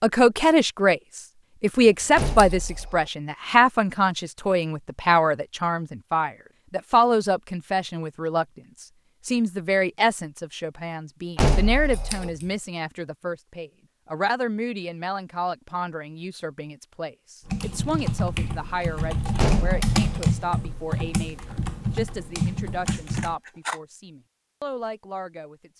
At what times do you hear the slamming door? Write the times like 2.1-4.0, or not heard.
2.1-3.1, 11.3-12.3, 19.4-20.3.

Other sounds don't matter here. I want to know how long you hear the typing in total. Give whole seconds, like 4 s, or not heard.
6 s.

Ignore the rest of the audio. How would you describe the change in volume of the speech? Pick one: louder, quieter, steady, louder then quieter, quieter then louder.
quieter.